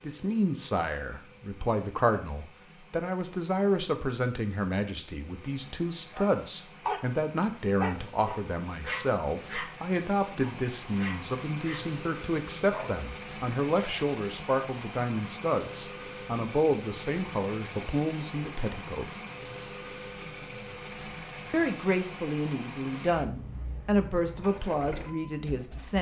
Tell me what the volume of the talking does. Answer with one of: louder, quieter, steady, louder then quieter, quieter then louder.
steady.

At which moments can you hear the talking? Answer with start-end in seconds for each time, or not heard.
0.0-19.1, 21.5-25.9.